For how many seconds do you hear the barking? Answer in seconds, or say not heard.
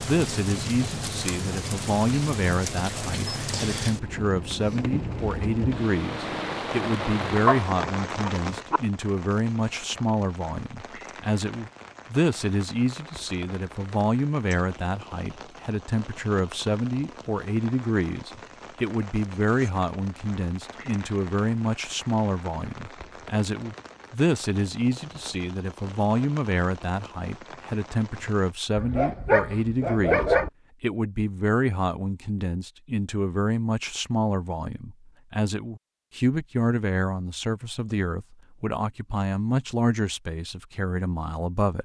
3 s.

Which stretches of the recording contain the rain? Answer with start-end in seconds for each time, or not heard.
0.0-28.6.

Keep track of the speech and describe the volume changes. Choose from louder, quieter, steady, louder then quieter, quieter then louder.
steady.